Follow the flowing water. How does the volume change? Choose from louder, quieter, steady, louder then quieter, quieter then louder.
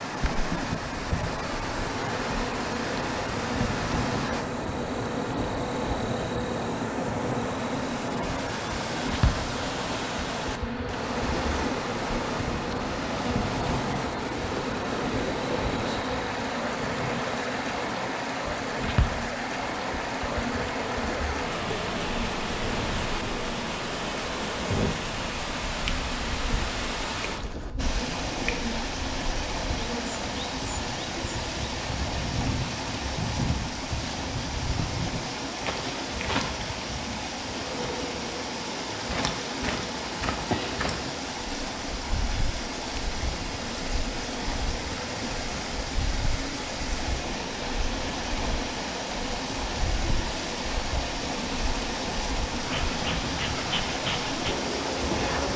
steady.